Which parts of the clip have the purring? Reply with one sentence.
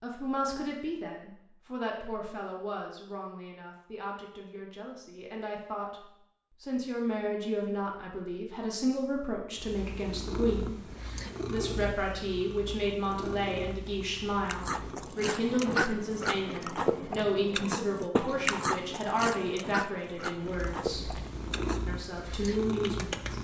The purring can be heard from 9.6 to 15.1 s and from 20.4 to 23.3 s.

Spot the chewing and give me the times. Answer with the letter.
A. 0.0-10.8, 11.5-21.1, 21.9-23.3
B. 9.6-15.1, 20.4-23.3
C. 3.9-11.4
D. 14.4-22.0
D.